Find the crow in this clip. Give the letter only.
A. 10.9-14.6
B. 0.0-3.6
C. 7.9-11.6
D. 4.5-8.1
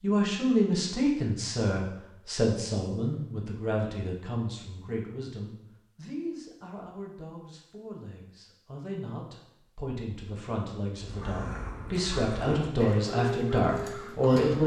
A.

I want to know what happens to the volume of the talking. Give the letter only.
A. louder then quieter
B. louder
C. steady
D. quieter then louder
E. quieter
D.